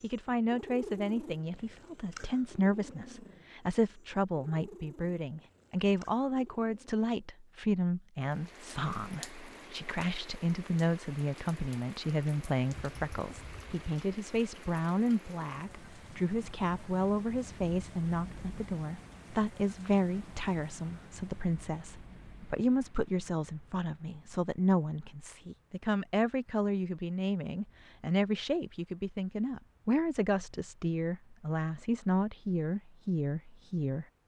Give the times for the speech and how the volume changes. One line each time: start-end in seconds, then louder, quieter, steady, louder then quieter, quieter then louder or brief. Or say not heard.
0.0-34.0 steady.